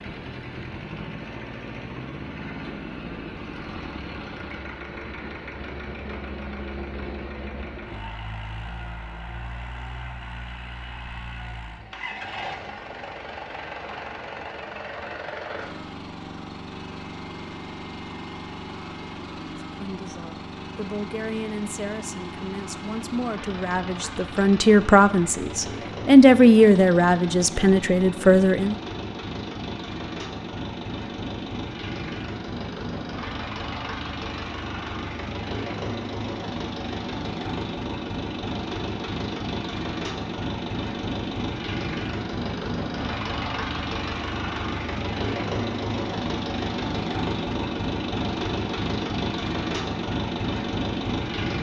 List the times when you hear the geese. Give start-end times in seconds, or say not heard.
not heard.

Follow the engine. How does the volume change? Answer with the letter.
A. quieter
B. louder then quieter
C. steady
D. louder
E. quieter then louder
D.